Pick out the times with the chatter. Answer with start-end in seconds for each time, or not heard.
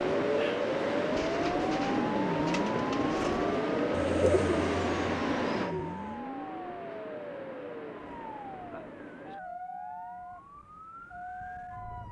not heard.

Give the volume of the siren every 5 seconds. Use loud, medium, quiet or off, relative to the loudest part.
loud, medium, quiet.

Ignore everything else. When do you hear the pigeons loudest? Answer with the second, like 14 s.
4 s.